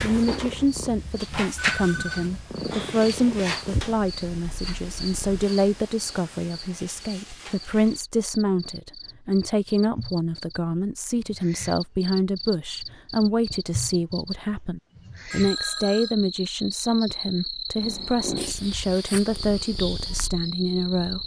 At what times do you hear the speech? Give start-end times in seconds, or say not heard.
0.0-21.2.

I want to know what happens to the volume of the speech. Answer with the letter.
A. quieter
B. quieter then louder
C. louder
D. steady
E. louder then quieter
D.